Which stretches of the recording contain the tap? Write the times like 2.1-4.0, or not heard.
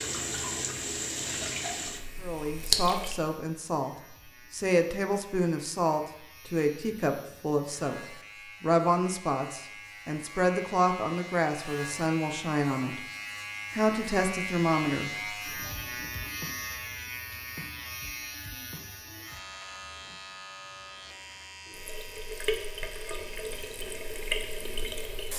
0.0-3.2, 21.7-25.3.